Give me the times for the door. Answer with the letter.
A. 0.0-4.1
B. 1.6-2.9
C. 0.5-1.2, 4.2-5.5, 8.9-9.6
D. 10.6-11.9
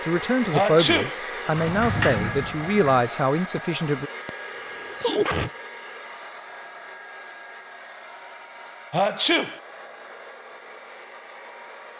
B.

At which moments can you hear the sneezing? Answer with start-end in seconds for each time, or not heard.
0.5-1.2, 4.2-5.5, 8.9-9.6.